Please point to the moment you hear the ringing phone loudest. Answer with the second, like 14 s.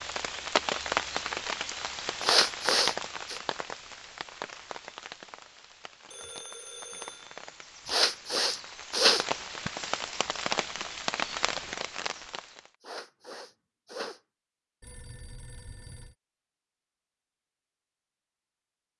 7 s.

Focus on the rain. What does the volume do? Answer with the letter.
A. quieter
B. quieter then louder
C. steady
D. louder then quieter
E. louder
B.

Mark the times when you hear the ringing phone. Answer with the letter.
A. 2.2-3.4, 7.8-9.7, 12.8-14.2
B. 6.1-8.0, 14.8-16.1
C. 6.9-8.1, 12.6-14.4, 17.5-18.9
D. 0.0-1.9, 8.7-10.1
B.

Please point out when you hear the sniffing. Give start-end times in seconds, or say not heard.
2.2-3.4, 7.8-9.7, 12.8-14.2.